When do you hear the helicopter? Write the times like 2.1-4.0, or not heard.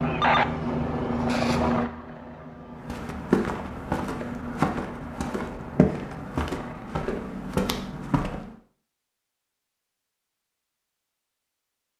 0.0-7.0.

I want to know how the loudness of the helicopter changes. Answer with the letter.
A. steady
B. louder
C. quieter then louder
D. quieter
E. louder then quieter
D.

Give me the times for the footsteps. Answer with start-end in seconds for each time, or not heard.
2.8-8.5.